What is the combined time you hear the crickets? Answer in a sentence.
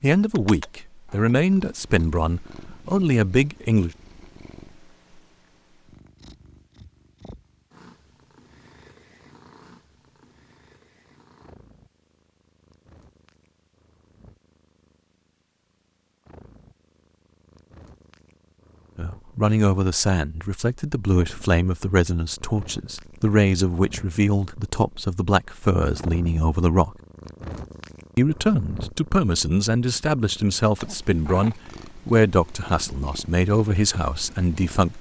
You can't hear the crickets here.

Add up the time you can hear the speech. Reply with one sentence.
The speech can be heard for 19 seconds in total.